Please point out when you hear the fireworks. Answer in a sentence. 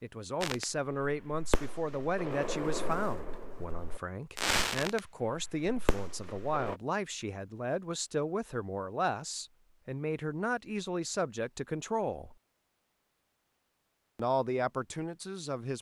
The fireworks can be heard from 0.4 to 6.8 s.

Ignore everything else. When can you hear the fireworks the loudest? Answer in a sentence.
The volume of the fireworks peaks at 5 seconds.